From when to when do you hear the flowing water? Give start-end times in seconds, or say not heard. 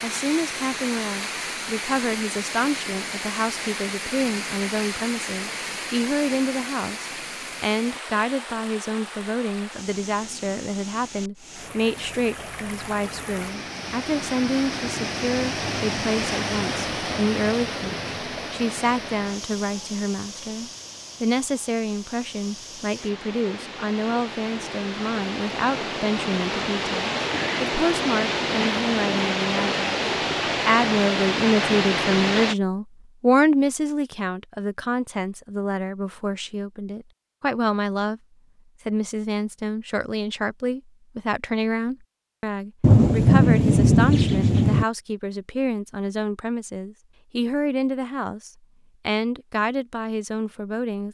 0.0-32.5.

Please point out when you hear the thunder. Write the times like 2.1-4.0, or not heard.
42.8-44.9.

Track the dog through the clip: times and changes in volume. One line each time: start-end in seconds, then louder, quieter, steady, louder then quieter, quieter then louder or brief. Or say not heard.
not heard.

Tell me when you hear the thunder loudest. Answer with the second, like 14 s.
43 s.